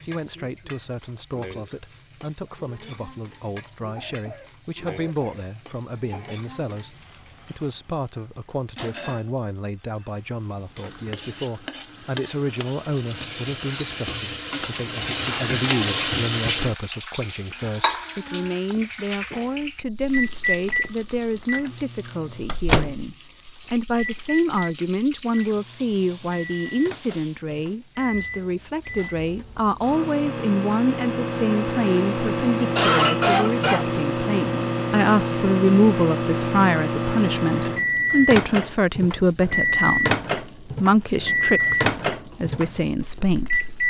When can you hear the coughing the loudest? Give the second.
33 s.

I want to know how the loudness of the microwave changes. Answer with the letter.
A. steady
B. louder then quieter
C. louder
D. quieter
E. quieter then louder
E.